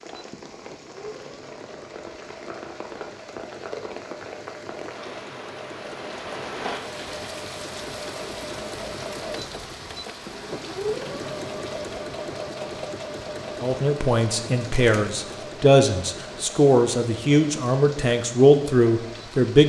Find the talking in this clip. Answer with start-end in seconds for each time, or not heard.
13.6-19.6.